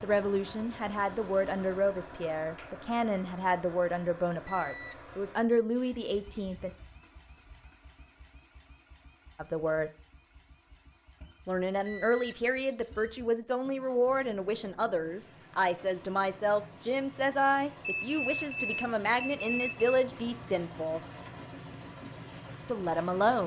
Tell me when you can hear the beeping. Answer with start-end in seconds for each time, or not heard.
4.5-5.6, 11.8-12.4, 17.8-19.8.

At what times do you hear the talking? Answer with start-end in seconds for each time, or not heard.
0.0-6.7, 9.3-9.9, 11.4-21.0, 22.6-23.4.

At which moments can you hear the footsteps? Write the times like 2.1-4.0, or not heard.
not heard.